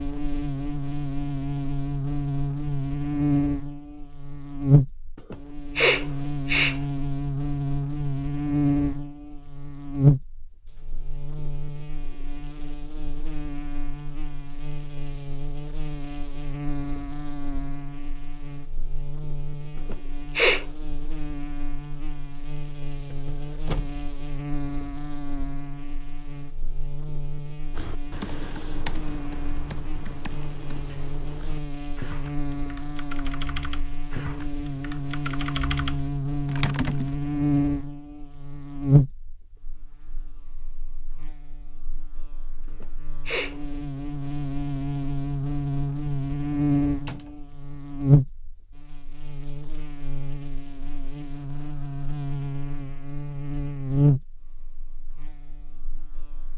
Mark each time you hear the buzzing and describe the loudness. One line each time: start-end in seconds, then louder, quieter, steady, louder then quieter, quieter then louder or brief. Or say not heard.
0.0-56.5 quieter then louder.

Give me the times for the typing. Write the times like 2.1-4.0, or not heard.
27.8-37.1.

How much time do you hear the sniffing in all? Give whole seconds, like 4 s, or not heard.
3 s.